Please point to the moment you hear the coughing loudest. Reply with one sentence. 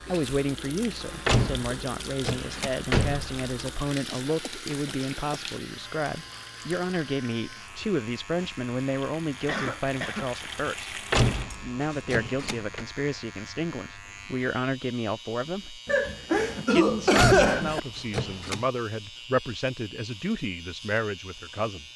The volume of the coughing peaks at 17 seconds.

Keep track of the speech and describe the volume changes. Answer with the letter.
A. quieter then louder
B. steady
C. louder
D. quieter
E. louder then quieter
B.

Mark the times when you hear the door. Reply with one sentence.
You can hear the door from 1.2 to 3.5 s, from 11.1 to 12.8 s and from 17.1 to 18.6 s.